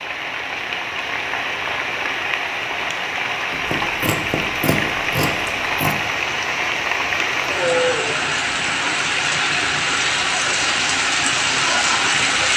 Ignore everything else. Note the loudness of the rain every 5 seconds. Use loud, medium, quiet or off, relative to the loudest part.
medium, loud, loud.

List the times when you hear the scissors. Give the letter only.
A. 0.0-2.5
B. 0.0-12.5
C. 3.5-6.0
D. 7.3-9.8
C.